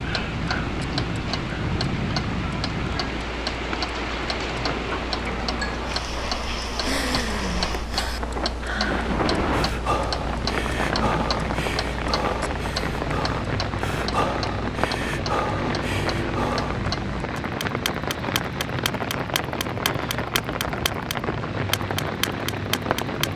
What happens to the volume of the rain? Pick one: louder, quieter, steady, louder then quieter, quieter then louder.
steady.